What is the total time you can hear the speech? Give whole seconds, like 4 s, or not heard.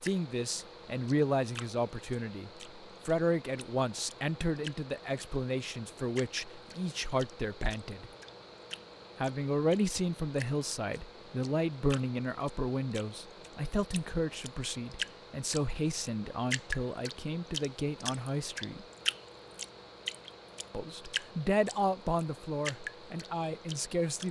21 s.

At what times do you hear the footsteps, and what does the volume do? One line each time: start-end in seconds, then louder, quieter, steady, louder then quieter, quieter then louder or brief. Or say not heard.
not heard.